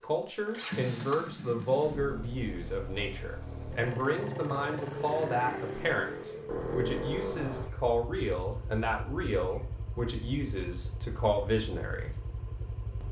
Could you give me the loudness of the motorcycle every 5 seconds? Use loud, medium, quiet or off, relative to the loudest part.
loud, loud, medium.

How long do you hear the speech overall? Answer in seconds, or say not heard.
12 s.